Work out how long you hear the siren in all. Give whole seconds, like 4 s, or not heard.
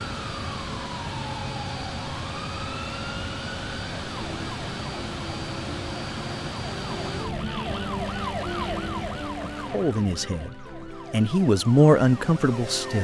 13 s.